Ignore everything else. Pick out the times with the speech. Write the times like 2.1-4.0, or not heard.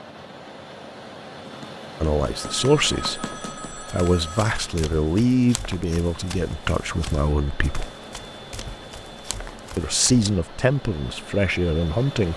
2.0-7.9, 9.8-12.3.